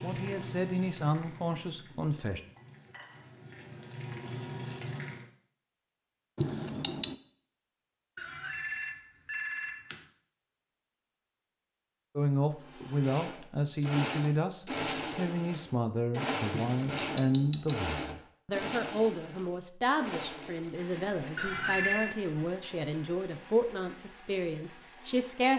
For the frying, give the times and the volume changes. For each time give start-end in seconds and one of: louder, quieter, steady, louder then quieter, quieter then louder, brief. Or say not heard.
0.0-5.3 quieter then louder.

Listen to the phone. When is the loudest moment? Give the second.
22 s.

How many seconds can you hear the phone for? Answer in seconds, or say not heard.
3 s.